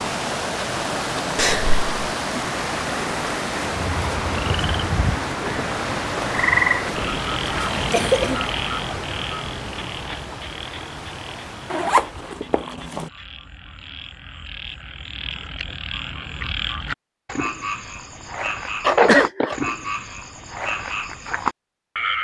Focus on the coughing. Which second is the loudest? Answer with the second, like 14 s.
19 s.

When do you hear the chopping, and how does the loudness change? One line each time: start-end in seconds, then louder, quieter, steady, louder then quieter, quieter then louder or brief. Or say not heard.
not heard.